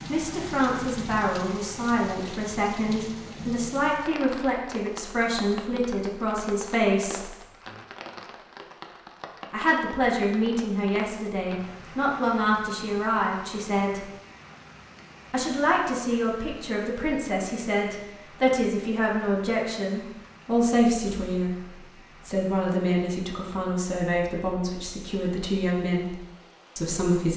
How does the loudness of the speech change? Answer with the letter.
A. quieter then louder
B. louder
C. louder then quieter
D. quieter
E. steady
E.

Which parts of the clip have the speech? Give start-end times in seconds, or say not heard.
0.1-7.3, 9.5-14.1, 15.3-21.6, 22.2-27.3.